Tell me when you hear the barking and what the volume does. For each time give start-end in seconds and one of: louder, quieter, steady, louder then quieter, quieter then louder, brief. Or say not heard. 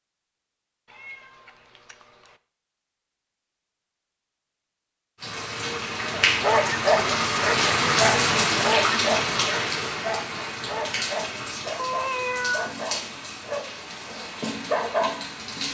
6.1-15.6 quieter then louder.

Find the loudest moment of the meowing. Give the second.
12 s.